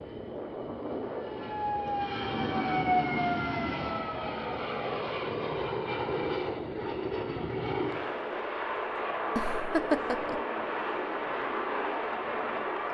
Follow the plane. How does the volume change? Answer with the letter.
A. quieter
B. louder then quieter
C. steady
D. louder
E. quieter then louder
C.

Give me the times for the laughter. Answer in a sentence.
You can hear the laughter from 9.3 to 10.4 s.